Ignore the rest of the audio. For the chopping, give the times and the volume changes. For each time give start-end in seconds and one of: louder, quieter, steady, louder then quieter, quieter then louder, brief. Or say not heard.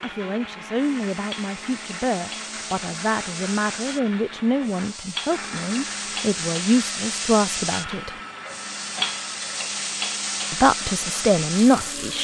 not heard.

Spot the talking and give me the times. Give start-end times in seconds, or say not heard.
0.0-8.1, 10.5-12.2.